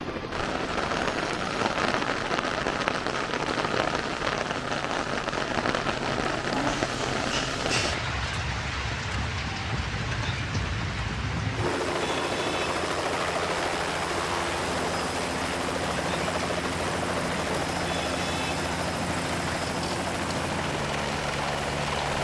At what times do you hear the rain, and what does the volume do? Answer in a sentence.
The rain can be heard from 0.1 to 22.1 s, getting quieter.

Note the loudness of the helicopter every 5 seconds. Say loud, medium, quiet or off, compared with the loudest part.
medium, medium, loud, loud, loud.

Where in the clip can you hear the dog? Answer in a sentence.
The dog can be heard from 6.5 to 8.0 s.